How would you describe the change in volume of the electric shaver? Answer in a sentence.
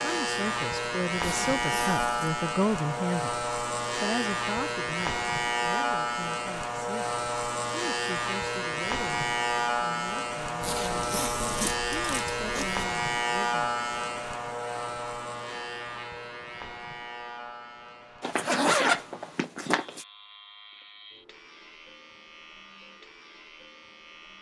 The loudness of the electric shaver goes down.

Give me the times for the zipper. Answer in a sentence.
You can hear the zipper from 1.2 to 2.3 s, from 10.6 to 12.8 s and from 18.2 to 20.1 s.